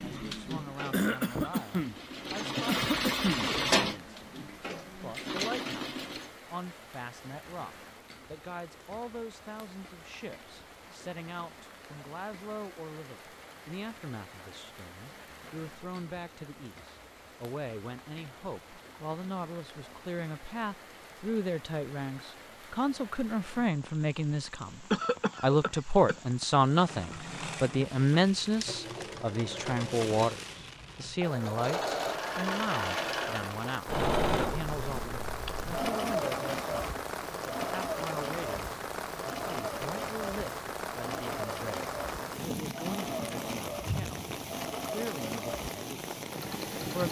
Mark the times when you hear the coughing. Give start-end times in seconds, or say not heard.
0.9-1.9, 2.6-3.5, 24.9-26.1.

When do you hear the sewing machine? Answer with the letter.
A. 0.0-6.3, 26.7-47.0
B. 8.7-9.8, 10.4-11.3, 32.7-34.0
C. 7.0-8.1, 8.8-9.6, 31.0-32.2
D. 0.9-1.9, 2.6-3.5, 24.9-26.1
A.